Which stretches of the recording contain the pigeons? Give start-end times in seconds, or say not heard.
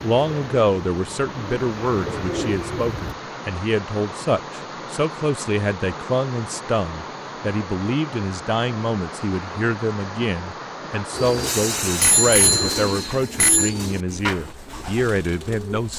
0.0-3.1, 11.1-15.9.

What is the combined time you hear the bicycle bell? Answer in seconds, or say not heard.
2 s.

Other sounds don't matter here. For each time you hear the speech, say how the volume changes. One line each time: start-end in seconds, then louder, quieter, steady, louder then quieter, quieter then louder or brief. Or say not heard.
0.0-15.9 steady.